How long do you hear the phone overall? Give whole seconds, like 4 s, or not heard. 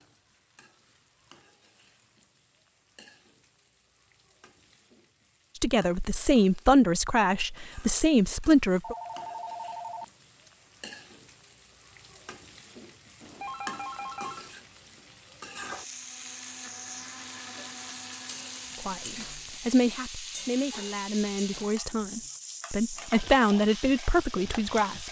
3 s.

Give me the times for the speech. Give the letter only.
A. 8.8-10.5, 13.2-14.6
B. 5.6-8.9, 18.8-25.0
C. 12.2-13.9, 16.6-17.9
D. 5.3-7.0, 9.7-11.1
B.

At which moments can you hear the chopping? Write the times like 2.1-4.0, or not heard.
not heard.